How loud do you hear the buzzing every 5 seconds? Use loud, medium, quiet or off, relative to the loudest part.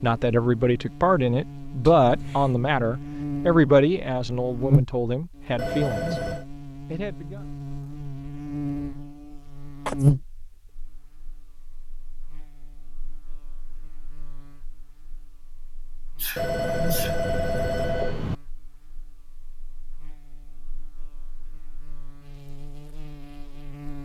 loud, medium, loud, quiet, quiet.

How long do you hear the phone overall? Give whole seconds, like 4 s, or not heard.
3 s.